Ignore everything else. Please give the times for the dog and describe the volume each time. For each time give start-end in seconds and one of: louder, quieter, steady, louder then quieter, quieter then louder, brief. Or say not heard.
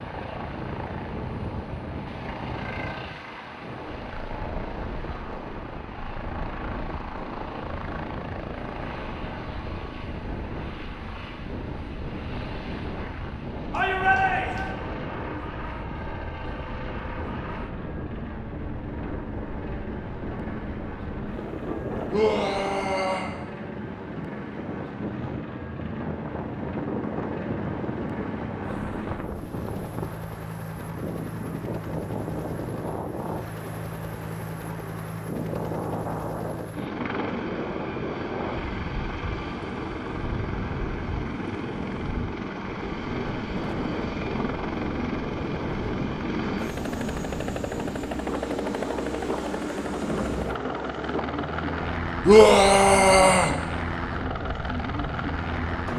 not heard.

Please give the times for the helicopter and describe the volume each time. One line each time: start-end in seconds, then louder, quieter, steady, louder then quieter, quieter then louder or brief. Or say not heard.
0.0-55.9 louder.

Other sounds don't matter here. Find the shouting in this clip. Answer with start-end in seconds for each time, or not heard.
13.7-14.8, 22.1-23.3, 52.2-53.5.